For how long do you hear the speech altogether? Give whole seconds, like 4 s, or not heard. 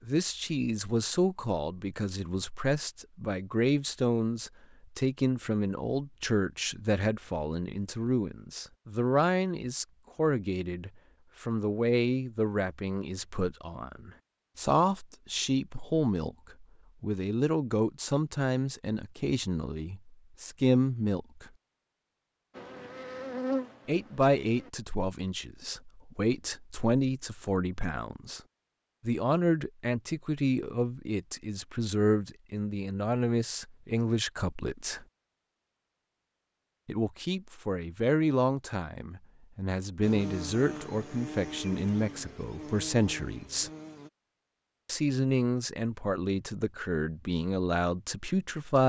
43 s.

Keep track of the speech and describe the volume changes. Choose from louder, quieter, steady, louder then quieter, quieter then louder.
steady.